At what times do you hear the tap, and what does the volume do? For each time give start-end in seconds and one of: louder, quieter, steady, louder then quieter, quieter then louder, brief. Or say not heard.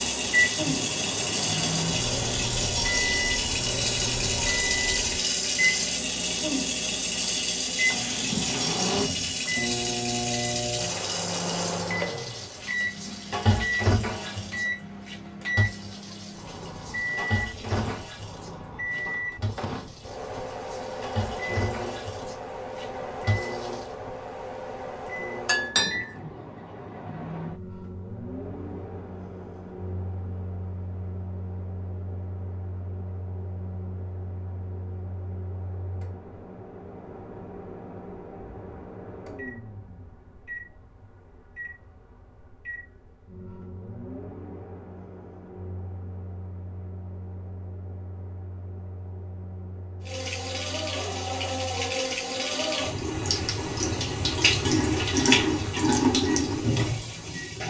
0.0-23.9 quieter
50.0-57.6 louder.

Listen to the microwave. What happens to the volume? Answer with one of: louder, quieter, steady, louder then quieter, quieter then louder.
quieter.